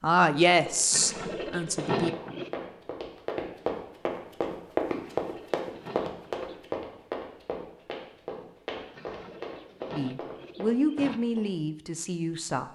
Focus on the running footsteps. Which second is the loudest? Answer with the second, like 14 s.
5 s.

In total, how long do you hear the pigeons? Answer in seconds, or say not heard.
6 s.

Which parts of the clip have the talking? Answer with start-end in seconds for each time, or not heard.
0.0-2.1, 9.9-12.6.